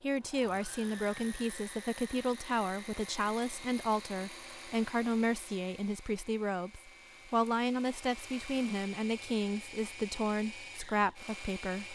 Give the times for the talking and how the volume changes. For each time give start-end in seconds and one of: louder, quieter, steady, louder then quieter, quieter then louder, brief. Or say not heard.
0.0-11.9 steady.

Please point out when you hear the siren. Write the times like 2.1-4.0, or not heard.
not heard.